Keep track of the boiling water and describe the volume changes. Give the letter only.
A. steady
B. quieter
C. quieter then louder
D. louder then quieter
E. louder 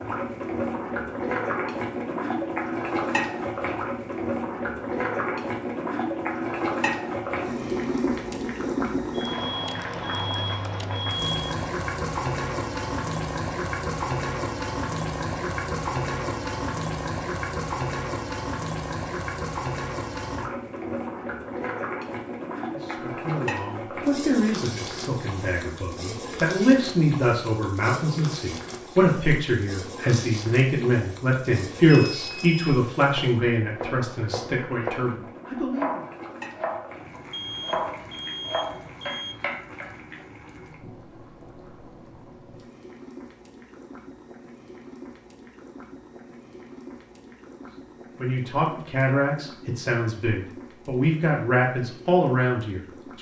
B.